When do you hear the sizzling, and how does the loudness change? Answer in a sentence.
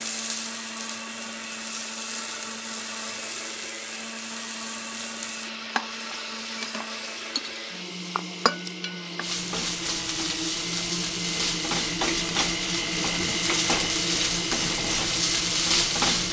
You can hear the sizzling from 0.0 to 16.2 s, getting louder.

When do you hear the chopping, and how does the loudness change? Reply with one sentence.
The chopping can't be heard in this clip.